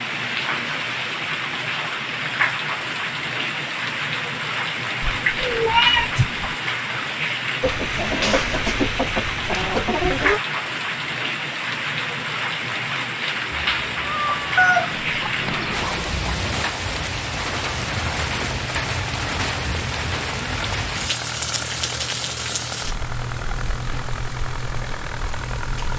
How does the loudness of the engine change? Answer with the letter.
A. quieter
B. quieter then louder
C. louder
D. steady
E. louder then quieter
D.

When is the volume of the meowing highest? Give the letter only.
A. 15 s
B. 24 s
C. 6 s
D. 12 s
C.